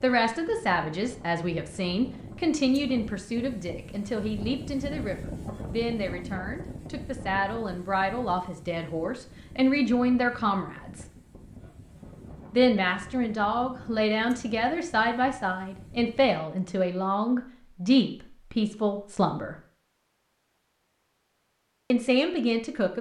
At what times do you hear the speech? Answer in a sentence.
The speech can be heard from 0.0 to 11.1 s, from 12.5 to 19.6 s and from 21.9 to 22.9 s.